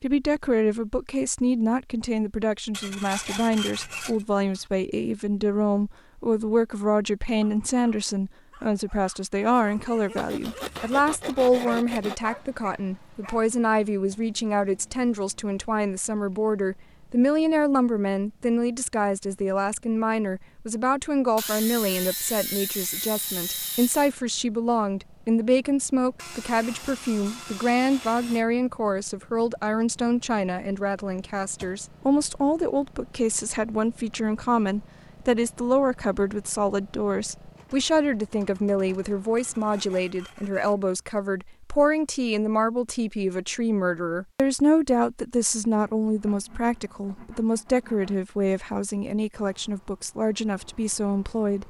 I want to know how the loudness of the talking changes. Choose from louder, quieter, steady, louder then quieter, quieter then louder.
steady.